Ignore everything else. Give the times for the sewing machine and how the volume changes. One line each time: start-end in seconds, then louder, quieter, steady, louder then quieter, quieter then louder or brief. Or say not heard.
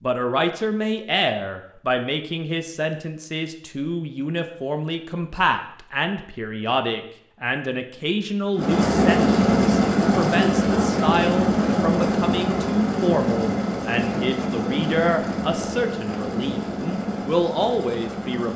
8.6-18.5 quieter.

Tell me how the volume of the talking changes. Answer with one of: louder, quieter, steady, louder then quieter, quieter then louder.
steady.